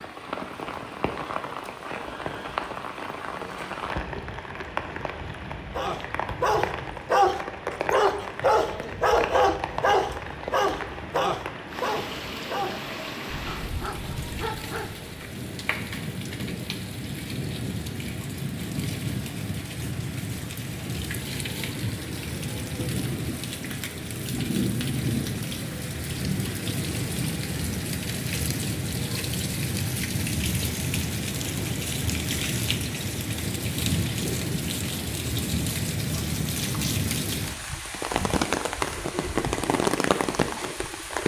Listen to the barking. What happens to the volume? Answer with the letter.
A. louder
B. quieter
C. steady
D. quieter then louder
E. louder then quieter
B.